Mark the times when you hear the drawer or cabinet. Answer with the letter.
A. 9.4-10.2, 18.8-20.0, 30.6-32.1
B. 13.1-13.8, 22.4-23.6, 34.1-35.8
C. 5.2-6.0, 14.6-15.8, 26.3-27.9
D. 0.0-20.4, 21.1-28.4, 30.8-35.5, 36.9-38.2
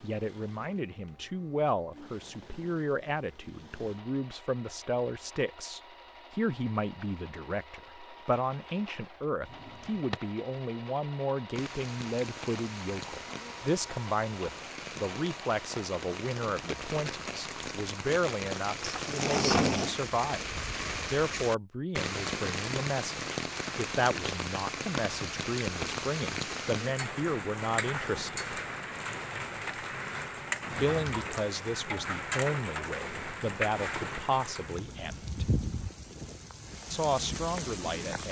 A.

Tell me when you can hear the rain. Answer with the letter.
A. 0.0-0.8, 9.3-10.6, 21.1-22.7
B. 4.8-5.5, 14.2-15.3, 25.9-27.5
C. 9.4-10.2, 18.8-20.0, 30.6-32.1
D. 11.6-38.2
D.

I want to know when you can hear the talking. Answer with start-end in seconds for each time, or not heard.
0.0-20.4, 21.1-28.4, 30.8-35.5, 36.9-38.2.